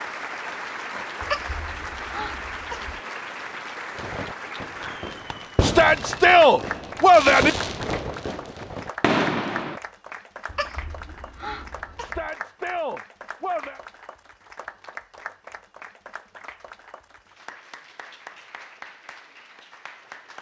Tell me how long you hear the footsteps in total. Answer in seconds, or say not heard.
not heard.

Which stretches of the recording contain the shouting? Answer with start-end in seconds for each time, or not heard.
5.6-7.5, 12.0-13.8.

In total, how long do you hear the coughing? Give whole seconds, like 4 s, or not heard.
4 s.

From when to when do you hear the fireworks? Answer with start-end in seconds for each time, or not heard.
4.0-9.8.